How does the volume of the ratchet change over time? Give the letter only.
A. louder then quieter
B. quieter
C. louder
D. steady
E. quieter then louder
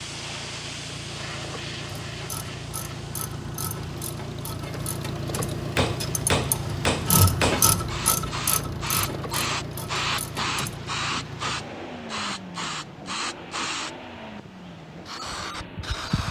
A.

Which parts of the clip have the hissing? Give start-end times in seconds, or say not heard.
0.0-16.2.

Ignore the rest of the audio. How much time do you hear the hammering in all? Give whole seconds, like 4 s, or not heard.
2 s.